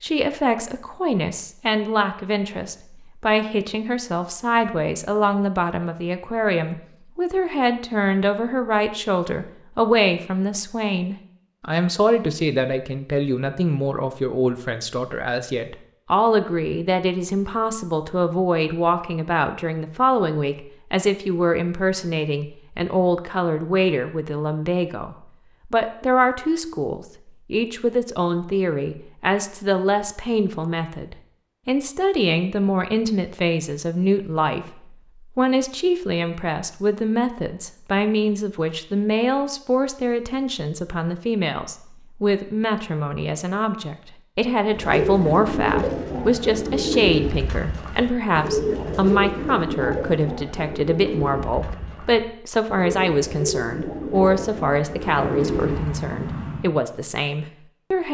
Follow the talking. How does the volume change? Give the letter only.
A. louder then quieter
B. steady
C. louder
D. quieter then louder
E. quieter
B.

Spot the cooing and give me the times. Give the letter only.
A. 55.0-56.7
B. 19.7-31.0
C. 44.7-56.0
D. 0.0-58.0
C.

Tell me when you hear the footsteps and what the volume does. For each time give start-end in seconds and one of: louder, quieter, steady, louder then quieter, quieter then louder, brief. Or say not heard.
not heard.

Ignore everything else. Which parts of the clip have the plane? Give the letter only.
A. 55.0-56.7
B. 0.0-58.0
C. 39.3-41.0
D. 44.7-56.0
A.